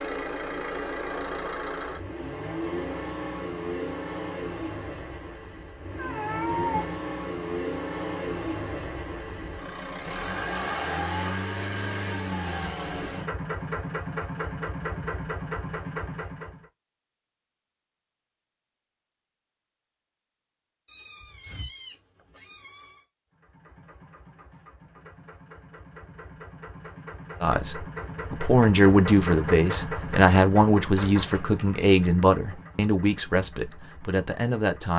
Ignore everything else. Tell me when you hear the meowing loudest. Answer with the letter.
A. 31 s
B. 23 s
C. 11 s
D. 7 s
D.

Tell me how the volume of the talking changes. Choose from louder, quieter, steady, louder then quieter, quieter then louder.
quieter.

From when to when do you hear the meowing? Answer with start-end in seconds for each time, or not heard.
5.9-7.0, 20.9-23.1.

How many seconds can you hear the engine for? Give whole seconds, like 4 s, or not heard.
28 s.